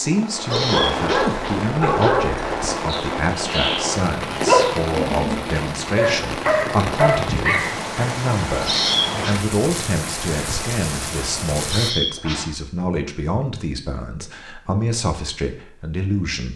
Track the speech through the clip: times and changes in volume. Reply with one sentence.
You can hear the speech from 0.0 to 16.5 s, at a steady volume.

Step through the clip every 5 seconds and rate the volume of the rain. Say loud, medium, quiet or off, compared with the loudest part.
loud, loud, loud, off.